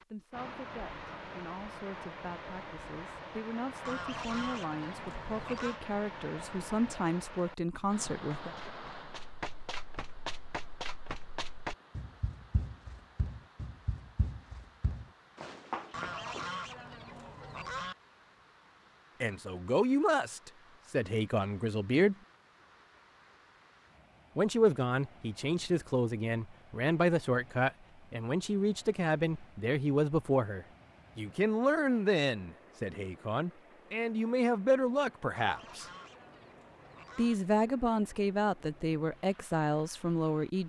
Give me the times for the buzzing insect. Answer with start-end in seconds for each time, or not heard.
not heard.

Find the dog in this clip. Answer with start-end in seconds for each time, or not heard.
not heard.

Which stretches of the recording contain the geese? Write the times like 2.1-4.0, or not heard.
3.9-5.8, 15.9-17.9, 35.4-37.4.